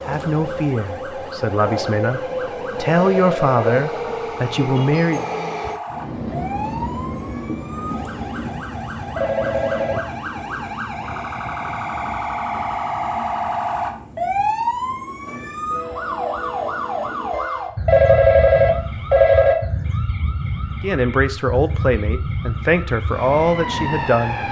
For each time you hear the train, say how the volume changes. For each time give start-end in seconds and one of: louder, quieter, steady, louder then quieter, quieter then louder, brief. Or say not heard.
0.0-17.3 quieter.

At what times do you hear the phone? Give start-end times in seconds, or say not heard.
2.9-3.8, 9.2-10.1, 17.9-19.6.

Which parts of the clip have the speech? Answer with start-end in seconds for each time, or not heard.
0.0-5.2, 20.8-24.4.